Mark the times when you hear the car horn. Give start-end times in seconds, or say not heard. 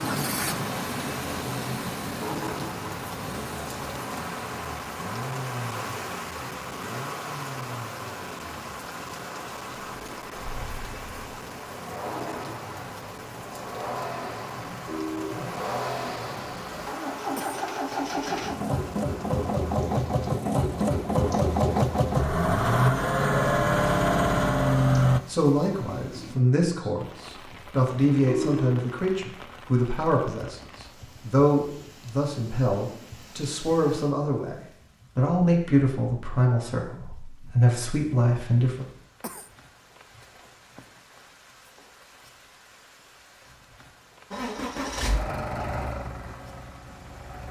14.6-15.5, 28.1-28.8.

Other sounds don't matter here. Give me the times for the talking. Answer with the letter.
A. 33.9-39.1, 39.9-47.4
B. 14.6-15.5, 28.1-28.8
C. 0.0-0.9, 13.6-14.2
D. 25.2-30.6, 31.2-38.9
D.